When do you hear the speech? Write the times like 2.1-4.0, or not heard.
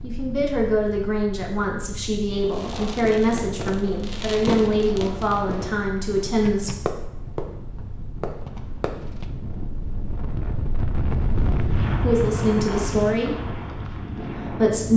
0.0-6.7, 12.0-13.4, 14.2-14.9.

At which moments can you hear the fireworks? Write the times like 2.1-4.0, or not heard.
2.4-9.2.